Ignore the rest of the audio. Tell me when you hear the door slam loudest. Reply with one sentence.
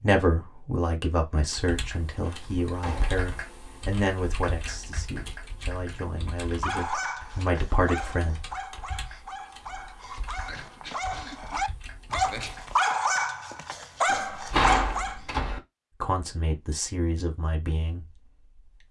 The volume of the door slam peaks at 15 seconds.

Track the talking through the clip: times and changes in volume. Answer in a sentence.
The talking can be heard from 0.0 to 8.4 s, getting quieter then louder; and briefly from 16.0 to 18.8 s.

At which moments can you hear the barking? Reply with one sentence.
The barking can be heard from 6.5 to 15.2 s.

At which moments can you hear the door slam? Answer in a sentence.
You can hear the door slam from 1.6 to 3.2 s and from 14.1 to 15.6 s.